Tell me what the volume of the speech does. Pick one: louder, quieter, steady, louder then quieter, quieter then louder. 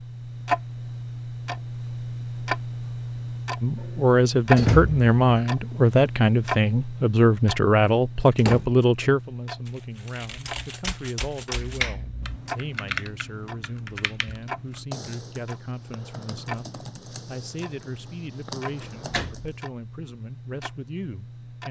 quieter.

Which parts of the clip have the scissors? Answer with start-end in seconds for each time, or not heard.
11.6-12.3.